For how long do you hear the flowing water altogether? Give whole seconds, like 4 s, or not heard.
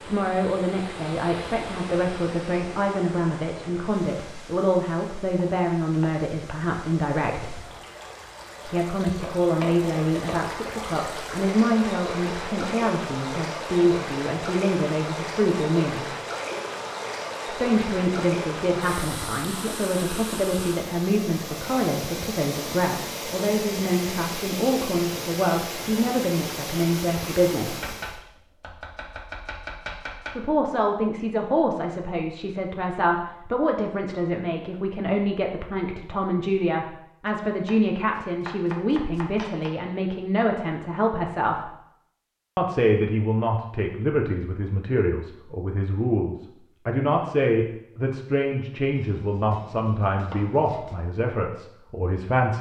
28 s.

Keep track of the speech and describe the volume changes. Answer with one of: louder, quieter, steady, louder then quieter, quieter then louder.
steady.